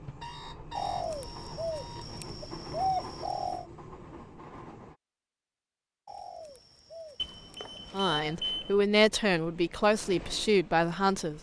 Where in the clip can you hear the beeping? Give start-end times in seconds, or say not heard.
0.2-2.2, 7.2-8.8.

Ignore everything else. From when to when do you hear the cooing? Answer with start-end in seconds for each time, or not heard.
0.8-3.6, 6.0-8.1.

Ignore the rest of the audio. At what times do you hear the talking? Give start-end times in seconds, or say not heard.
7.9-11.3.